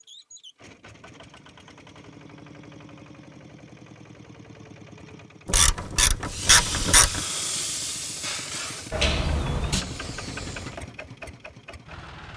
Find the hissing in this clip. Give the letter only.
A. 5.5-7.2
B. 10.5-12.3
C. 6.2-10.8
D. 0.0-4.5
C.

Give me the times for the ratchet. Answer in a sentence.
The ratchet can be heard from 5.5 to 7.2 s.